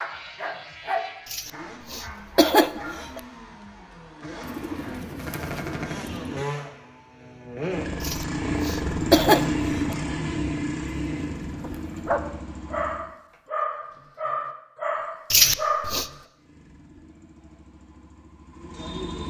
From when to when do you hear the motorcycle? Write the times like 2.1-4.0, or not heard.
0.0-13.1, 16.4-19.2.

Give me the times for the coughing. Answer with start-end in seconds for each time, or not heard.
1.3-3.2, 8.0-9.9, 15.3-16.1.